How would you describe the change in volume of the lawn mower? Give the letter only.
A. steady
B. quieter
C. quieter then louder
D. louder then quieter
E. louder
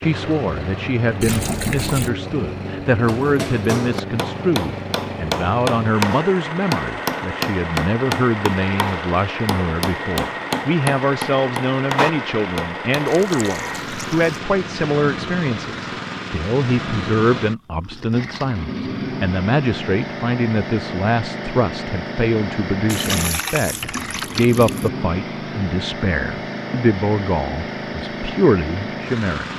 A.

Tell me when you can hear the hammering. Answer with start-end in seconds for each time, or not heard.
3.0-13.3.